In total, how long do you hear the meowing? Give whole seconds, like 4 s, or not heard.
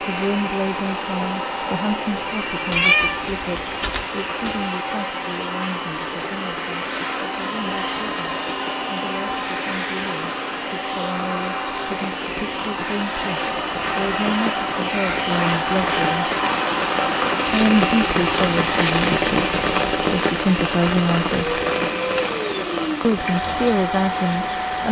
2 s.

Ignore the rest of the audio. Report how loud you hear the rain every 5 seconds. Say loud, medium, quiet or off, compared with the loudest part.
quiet, quiet, medium, loud, loud.